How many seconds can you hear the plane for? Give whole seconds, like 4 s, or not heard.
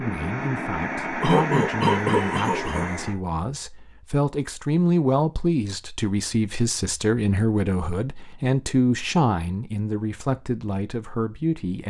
3 s.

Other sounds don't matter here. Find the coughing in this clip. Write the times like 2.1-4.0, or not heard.
1.2-2.9.